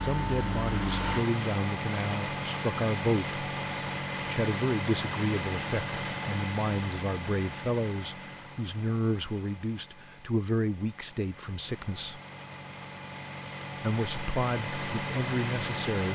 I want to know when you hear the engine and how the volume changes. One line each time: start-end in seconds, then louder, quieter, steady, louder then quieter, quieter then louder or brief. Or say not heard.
0.0-16.1 quieter then louder.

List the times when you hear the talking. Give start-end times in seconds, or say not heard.
0.0-3.4, 4.2-12.2, 13.8-16.1.